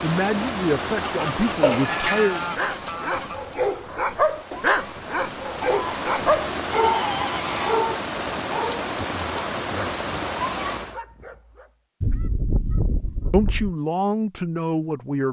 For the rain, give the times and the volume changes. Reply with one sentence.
You can hear the rain from 0.0 to 11.0 s, getting quieter then louder.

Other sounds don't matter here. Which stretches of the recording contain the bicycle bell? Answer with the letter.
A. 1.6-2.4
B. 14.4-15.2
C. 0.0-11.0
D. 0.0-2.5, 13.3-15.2
A.